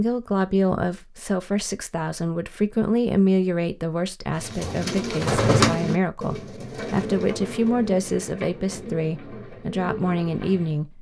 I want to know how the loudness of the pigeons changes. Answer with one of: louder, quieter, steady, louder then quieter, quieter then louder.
quieter.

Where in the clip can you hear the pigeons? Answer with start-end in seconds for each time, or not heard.
4.3-10.8.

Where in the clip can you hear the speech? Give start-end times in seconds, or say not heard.
0.0-10.9.